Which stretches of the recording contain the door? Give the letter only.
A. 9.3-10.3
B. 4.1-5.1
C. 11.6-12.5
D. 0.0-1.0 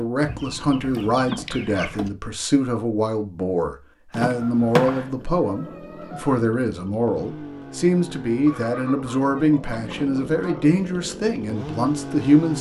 B.